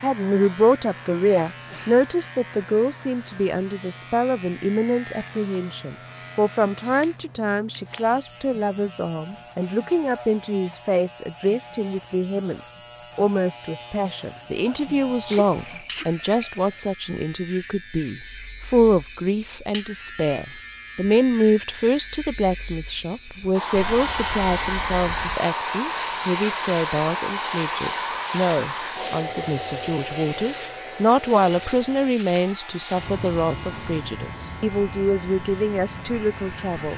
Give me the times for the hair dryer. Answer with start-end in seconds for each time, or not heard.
23.5-36.9.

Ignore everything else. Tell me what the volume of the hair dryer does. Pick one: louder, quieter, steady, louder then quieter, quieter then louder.
quieter.